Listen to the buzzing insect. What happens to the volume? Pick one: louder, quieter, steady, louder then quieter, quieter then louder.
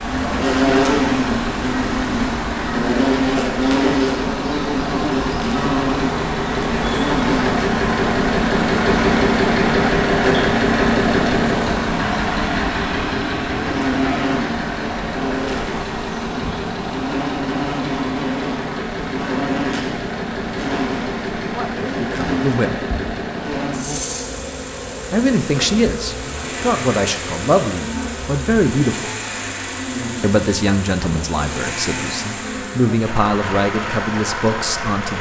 quieter.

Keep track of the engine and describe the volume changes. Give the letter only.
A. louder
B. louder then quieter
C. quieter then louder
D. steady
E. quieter
B.